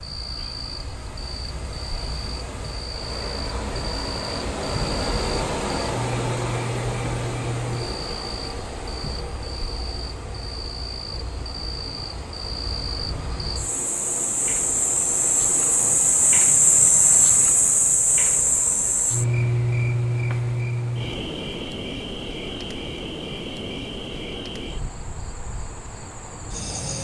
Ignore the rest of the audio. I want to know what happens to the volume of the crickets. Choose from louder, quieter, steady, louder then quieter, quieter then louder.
louder then quieter.